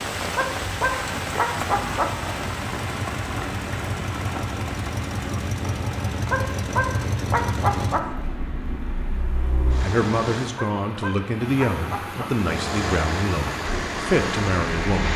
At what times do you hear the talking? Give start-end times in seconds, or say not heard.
9.8-15.1.